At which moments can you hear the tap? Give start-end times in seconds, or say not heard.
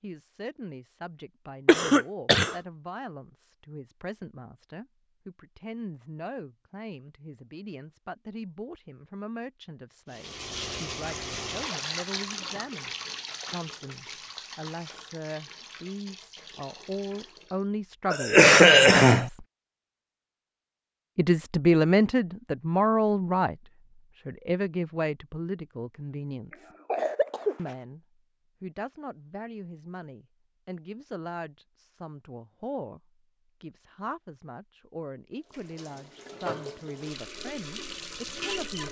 10.1-17.6, 35.5-38.8.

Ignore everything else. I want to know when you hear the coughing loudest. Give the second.
19 s.